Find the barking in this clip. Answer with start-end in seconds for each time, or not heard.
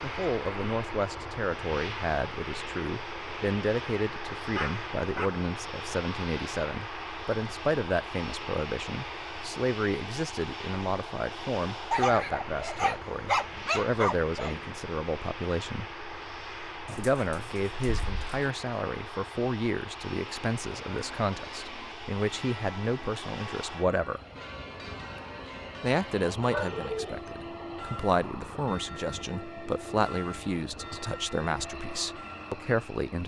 4.5-5.3, 11.9-14.7, 16.9-18.5, 26.4-27.1.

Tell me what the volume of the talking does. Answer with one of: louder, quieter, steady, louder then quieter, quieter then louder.
steady.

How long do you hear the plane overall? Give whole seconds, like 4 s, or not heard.
33 s.